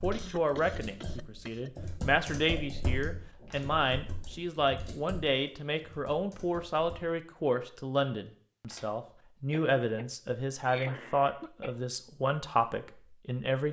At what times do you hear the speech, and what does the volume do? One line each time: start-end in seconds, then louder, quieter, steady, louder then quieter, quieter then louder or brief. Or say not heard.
0.0-13.6 steady.